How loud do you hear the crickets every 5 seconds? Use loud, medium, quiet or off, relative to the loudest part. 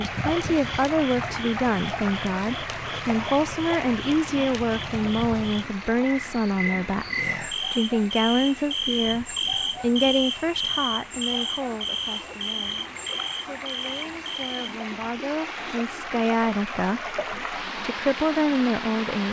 medium, loud, loud, off.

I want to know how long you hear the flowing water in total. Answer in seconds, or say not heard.
19 s.